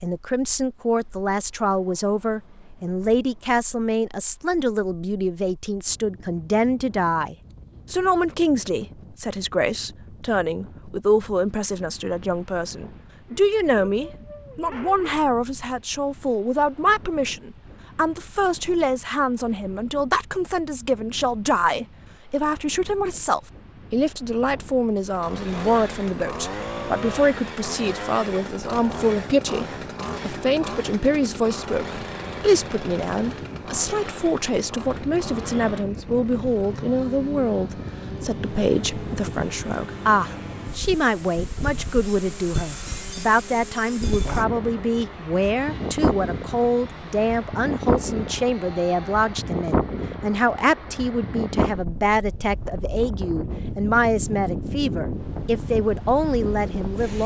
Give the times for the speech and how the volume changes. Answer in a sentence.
You can hear the speech from 0.0 to 57.2 s, at a steady volume.